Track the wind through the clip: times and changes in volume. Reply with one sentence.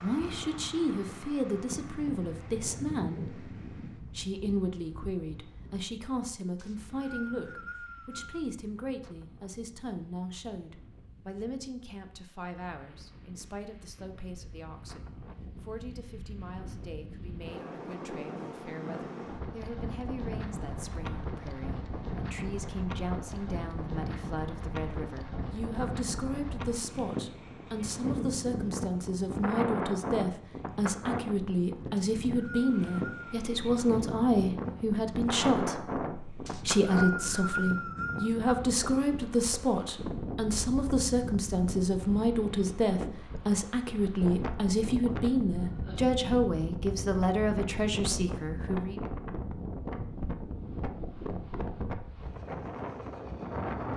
The wind can be heard from 0.0 to 53.9 s, getting louder.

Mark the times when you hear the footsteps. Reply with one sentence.
The footsteps can't be heard in this clip.